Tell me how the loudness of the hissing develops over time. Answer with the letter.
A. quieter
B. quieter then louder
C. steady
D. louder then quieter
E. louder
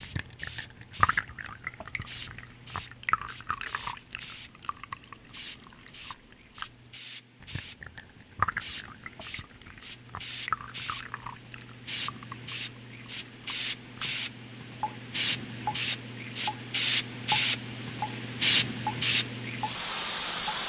E.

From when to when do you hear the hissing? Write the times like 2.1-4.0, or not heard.
0.0-20.6.